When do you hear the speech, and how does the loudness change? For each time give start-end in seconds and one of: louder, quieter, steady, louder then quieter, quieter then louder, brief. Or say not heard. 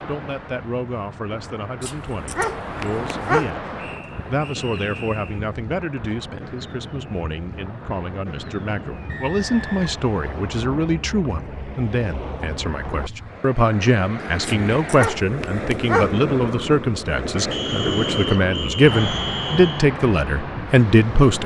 0.1-21.4 louder.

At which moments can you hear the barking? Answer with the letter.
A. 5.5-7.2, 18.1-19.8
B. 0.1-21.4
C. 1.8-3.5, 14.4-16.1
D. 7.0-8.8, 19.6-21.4
C.